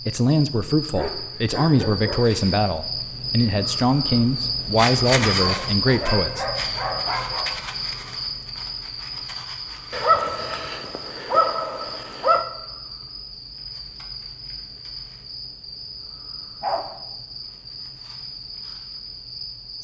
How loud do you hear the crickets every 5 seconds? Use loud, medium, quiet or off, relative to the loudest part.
loud, loud, medium, medium.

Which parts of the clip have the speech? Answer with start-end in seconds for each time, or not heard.
0.0-6.5.